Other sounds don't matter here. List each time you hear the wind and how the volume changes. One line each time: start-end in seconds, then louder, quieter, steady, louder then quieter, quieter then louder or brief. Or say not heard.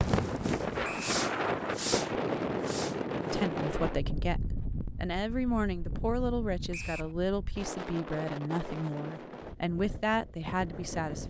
0.0-11.2 quieter.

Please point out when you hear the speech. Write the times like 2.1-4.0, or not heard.
3.3-11.2.